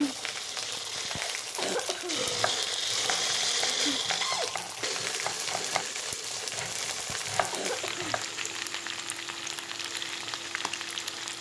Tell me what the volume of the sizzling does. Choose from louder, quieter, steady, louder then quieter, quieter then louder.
steady.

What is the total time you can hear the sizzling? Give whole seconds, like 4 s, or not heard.
11 s.